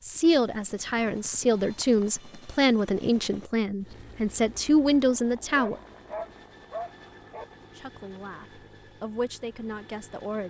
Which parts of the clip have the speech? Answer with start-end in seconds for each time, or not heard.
0.0-5.8, 7.8-10.4.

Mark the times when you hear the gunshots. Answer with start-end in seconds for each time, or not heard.
not heard.